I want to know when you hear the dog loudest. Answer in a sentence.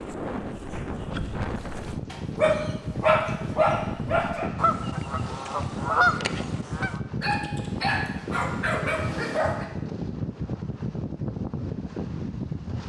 The volume of the dog peaks at 3 seconds.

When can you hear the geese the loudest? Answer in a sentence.
The volume of the geese peaks at 6 seconds.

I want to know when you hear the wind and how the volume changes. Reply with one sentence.
The wind can be heard from 0.0 to 12.8 s, at a steady volume.